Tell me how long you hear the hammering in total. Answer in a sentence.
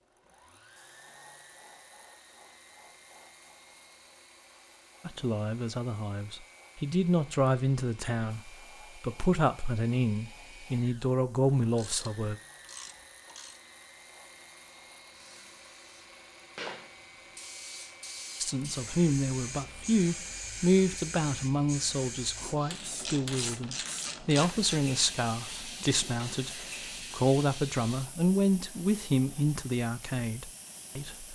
The hammering can't be heard in this clip.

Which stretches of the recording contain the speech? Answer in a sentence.
The speech can be heard from 5.0 to 12.3 s and from 18.4 to 31.3 s.